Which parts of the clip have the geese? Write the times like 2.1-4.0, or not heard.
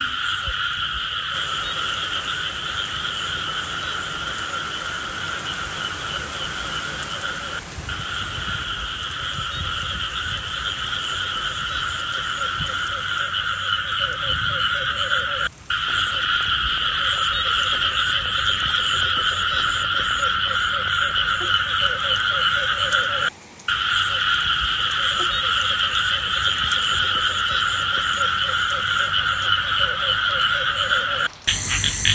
not heard.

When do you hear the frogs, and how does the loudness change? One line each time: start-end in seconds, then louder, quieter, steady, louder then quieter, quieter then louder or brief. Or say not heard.
0.0-32.1 louder.